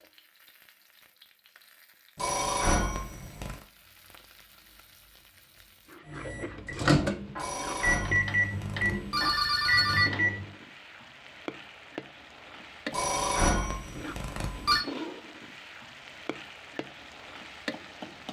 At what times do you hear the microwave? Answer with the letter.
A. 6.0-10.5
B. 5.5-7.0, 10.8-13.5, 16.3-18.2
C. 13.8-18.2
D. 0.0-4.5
A.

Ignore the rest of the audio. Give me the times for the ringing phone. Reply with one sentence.
The ringing phone can be heard from 2.1 to 3.5 s, from 7.3 to 10.1 s and from 12.9 to 14.8 s.